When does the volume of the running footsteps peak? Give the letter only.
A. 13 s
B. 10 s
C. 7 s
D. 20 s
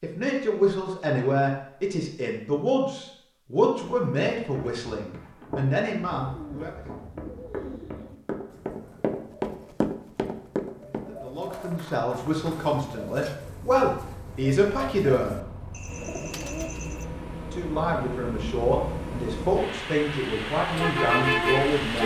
B.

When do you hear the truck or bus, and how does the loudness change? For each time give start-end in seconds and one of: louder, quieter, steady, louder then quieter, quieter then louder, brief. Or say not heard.
13.4-22.0 louder.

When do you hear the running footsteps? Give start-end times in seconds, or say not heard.
3.8-12.6.